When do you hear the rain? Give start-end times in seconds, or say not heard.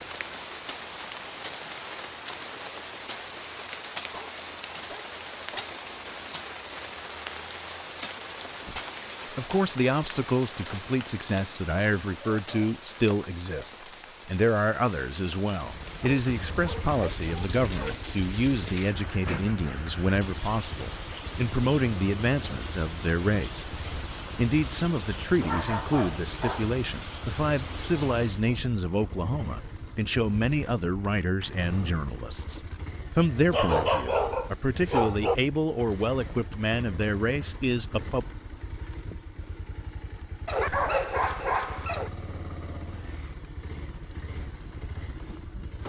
0.0-28.4.